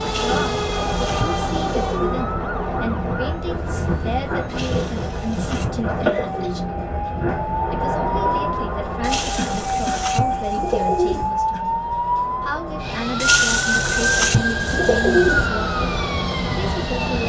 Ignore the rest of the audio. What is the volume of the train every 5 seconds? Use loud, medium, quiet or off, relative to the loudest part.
loud, loud, medium, loud.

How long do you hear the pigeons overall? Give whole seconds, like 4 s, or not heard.
9 s.